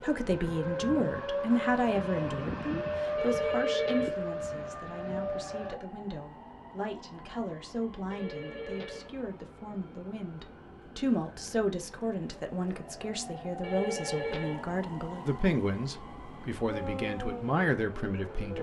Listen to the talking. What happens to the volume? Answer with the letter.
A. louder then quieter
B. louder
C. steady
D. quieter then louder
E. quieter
D.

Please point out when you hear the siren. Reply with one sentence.
You can hear the siren from 0.0 to 5.8 s and from 16.7 to 18.5 s.